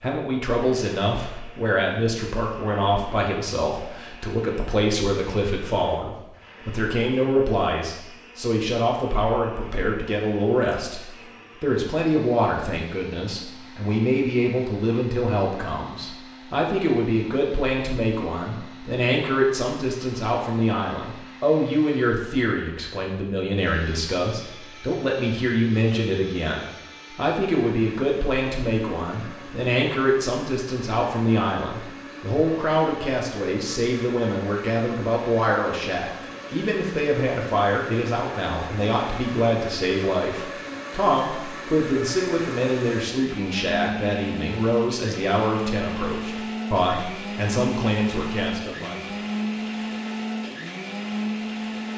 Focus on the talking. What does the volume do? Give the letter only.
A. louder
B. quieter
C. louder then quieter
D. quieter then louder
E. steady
E.